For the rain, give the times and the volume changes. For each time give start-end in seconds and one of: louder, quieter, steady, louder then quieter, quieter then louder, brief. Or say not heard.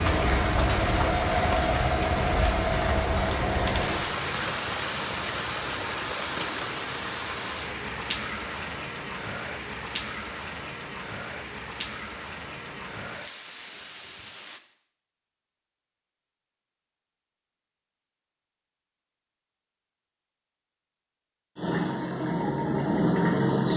0.0-14.6 quieter.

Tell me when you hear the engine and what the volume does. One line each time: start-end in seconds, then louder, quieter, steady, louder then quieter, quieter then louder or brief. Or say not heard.
0.0-4.0 steady
21.6-23.7 brief.